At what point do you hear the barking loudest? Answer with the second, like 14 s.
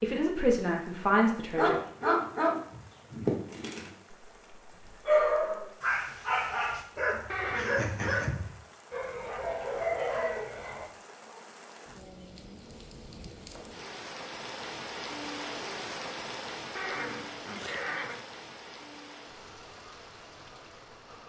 5 s.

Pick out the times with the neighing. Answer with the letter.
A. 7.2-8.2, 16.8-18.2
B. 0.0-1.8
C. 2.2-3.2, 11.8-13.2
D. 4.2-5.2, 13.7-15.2
A.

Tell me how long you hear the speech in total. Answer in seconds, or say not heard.
2 s.